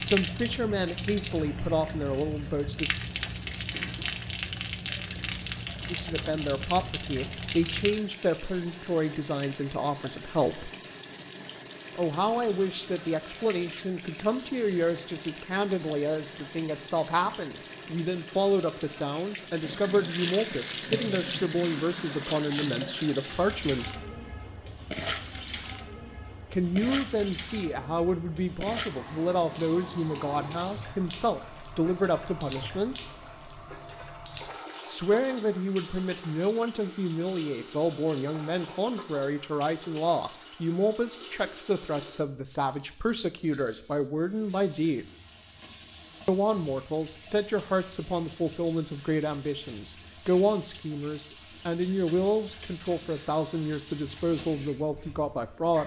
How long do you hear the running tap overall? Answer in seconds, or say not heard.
56 s.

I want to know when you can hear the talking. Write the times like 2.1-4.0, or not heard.
0.0-3.0, 5.9-10.7, 11.9-23.9, 26.5-33.0, 34.9-45.0, 46.2-55.8.